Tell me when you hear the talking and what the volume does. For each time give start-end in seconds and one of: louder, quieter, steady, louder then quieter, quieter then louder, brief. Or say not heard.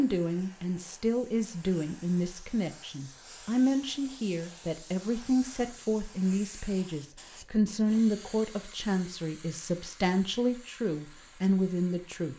0.0-12.3 steady.